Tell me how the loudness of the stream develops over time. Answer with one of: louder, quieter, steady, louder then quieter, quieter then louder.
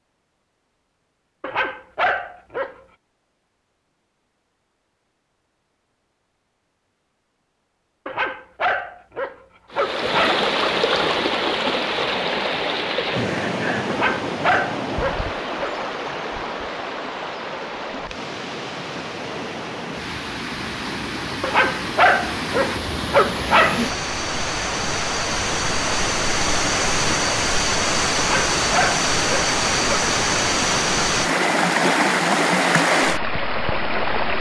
quieter then louder.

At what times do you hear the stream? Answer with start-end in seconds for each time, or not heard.
9.7-34.3.